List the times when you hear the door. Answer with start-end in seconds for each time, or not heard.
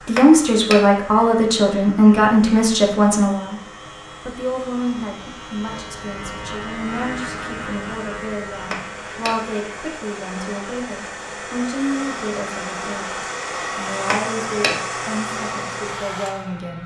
0.1-0.8, 8.7-9.3, 14.1-14.8.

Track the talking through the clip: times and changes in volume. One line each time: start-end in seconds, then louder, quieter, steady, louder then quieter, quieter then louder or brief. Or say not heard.
0.1-16.8 quieter.